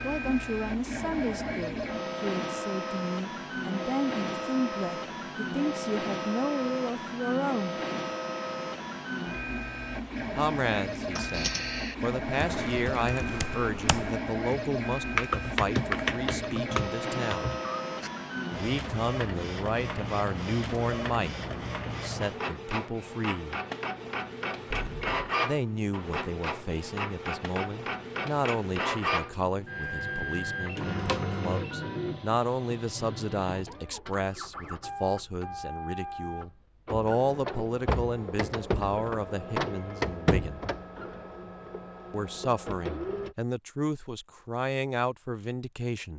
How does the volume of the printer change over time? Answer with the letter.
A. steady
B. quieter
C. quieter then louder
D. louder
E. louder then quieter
A.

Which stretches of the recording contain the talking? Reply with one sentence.
The talking can be heard from 0.0 to 7.8 s, from 10.3 to 17.5 s, from 18.6 to 21.4 s, from 21.9 to 23.6 s, from 25.4 to 40.6 s and from 42.1 to 46.1 s.